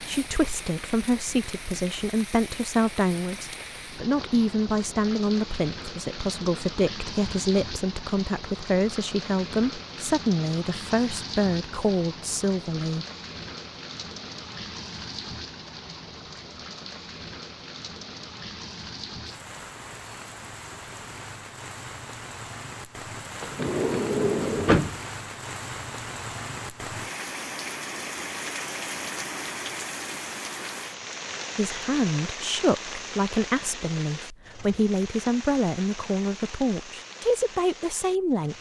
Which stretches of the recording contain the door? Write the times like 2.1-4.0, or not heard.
23.4-24.9.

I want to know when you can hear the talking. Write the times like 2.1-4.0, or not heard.
0.0-13.1, 31.6-38.5.